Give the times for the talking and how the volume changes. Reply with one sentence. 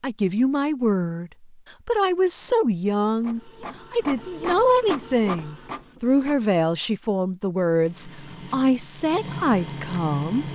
You can hear the talking from 0.0 to 10.5 s, at a steady volume.